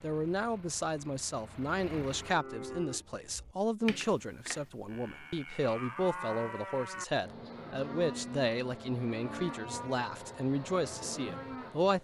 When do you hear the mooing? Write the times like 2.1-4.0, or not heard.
2.1-12.0.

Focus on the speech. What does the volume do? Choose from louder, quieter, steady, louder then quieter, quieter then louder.
steady.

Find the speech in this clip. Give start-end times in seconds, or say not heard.
0.0-12.0.